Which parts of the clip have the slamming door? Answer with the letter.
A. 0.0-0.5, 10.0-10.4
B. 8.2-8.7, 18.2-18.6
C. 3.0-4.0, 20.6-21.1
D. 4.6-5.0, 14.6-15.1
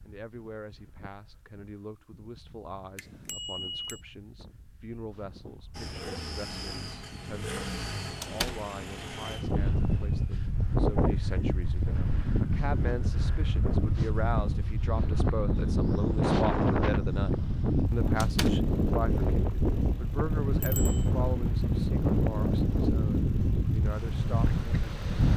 B.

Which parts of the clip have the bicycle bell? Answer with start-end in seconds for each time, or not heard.
3.0-4.0, 20.6-21.1.